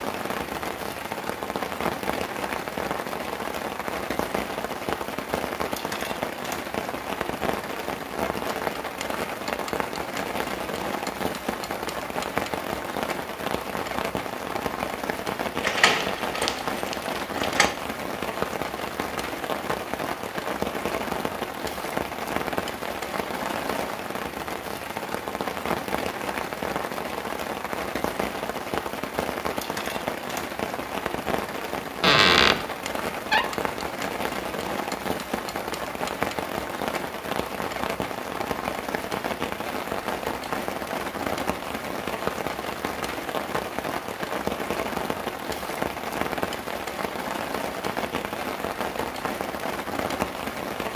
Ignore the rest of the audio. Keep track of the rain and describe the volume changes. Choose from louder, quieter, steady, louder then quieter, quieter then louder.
steady.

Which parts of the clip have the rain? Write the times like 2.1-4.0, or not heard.
0.0-50.9.